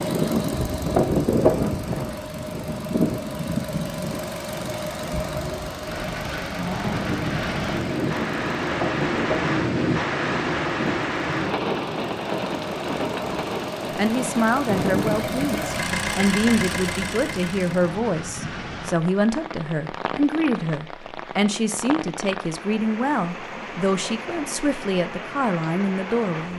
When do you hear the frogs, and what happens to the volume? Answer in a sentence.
The frogs can't be heard in this clip.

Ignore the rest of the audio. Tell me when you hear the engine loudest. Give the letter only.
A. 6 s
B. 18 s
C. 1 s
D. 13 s
C.